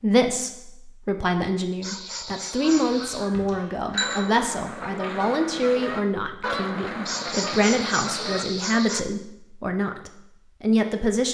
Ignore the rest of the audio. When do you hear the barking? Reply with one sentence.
You can hear the barking from 1.8 to 3.3 s and from 7.0 to 9.1 s.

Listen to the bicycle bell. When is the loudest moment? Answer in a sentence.
The volume of the bicycle bell peaks at 4 seconds.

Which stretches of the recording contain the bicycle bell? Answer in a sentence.
You can hear the bicycle bell from 2.8 to 4.2 s.